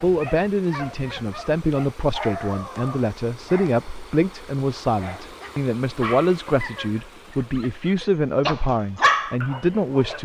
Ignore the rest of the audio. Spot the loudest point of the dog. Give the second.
9 s.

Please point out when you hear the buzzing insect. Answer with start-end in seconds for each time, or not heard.
not heard.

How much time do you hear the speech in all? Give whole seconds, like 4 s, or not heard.
10 s.